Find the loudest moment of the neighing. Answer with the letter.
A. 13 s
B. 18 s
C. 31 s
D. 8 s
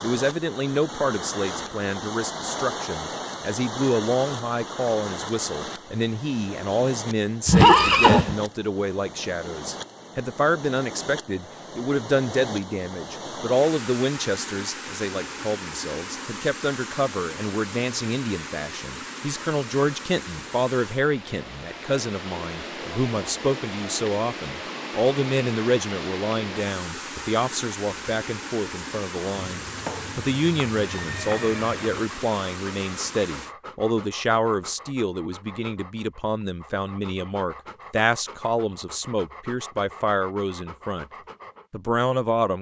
D.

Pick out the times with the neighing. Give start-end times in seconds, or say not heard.
7.5-8.3, 29.4-32.0.